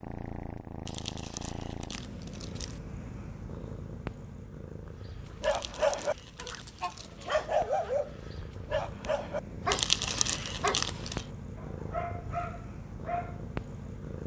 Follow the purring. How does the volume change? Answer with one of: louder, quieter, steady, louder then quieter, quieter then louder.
quieter then louder.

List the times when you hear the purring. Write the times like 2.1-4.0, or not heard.
0.0-14.2.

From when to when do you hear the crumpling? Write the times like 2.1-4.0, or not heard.
0.8-2.8, 5.4-7.1, 9.7-11.2.